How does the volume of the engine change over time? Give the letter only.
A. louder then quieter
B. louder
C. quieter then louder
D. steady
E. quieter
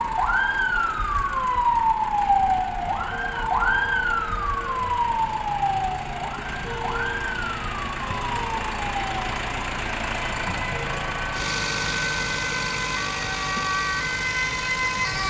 B.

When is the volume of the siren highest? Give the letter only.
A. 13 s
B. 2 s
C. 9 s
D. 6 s
B.